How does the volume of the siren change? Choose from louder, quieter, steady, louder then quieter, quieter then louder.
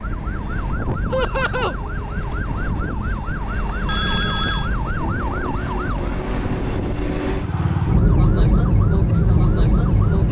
louder.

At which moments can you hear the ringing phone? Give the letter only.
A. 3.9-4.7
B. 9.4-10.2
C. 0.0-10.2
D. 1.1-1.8
A.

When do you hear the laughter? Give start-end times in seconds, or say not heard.
1.1-1.8.